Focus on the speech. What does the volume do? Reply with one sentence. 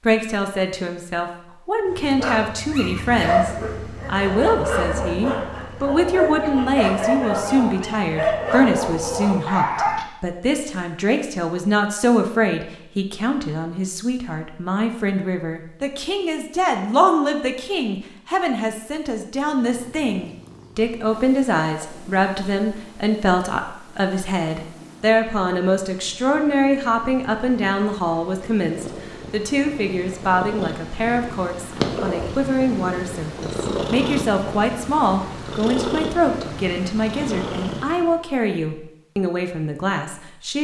The loudness of the speech stays about the same.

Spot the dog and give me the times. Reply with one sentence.
You can hear the dog from 1.9 to 10.1 s.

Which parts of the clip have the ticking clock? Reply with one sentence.
You can't hear the ticking clock here.